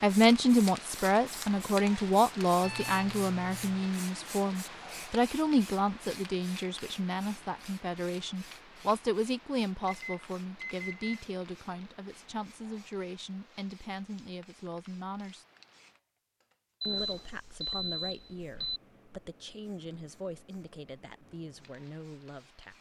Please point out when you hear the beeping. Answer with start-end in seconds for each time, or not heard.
2.6-4.0, 9.8-11.2, 16.8-18.8.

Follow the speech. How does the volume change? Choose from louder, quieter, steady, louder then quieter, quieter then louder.
quieter.